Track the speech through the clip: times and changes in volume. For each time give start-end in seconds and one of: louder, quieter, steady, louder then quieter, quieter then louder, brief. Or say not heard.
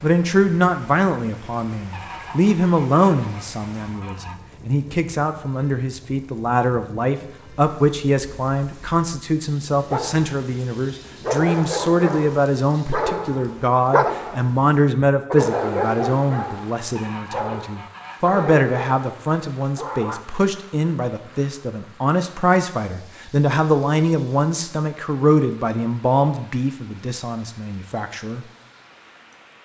0.0-28.4 steady.